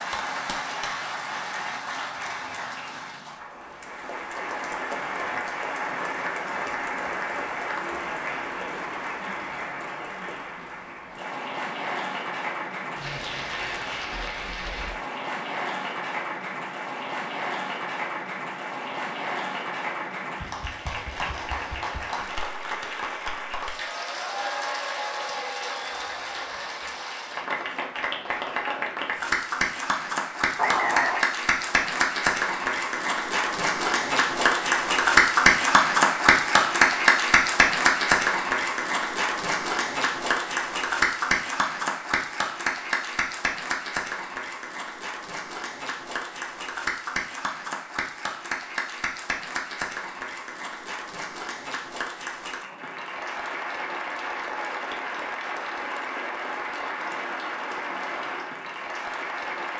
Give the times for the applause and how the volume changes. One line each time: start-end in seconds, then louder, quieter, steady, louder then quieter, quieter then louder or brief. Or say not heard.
0.0-59.7 louder then quieter.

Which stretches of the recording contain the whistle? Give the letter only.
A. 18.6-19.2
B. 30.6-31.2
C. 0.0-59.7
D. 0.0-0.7
B.